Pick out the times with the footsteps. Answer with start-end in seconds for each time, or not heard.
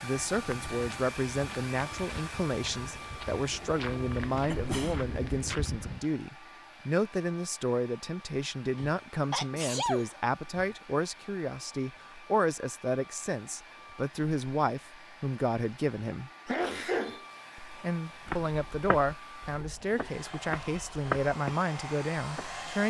0.1-6.0, 18.2-22.6.